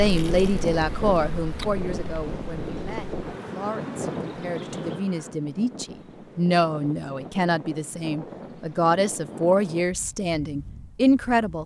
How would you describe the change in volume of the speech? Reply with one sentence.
The loudness of the speech goes down, then up.